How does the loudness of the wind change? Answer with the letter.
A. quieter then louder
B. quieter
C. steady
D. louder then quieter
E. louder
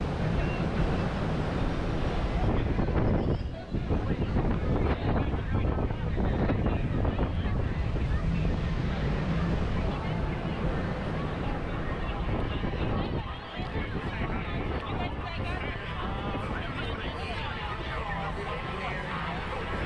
B.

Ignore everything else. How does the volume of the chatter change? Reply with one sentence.
The loudness of the chatter goes up.